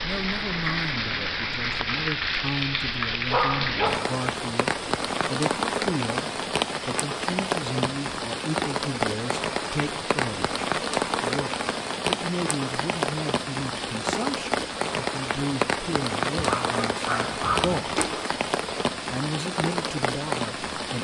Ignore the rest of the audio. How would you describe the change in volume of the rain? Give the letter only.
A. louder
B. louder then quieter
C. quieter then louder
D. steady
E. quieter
D.